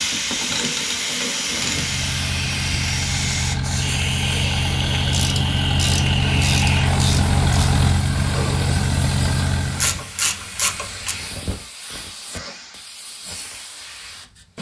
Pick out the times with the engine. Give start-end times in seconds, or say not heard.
1.4-10.1.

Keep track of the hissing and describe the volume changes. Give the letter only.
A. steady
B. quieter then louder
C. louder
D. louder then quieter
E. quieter
E.